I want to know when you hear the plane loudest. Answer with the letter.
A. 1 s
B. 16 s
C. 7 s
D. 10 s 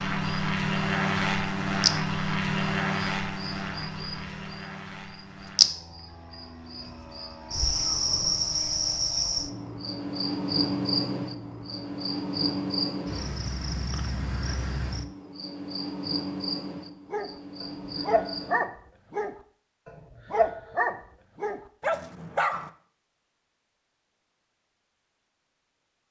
A.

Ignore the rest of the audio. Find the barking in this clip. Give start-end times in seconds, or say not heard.
17.1-22.7.